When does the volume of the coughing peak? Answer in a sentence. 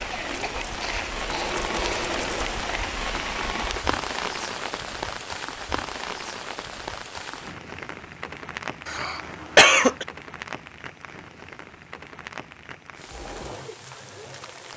The loudest moment of the coughing is at 10 seconds.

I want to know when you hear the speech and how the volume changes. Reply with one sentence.
The speech can't be heard in this clip.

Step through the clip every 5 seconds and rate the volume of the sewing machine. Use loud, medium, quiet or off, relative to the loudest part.
loud, off, medium.